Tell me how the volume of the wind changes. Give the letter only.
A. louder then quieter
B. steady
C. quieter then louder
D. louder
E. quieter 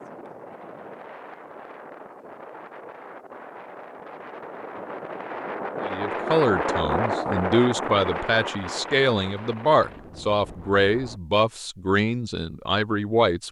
A.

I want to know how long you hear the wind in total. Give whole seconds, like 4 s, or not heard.
11 s.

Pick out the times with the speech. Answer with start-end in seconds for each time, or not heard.
5.8-13.4.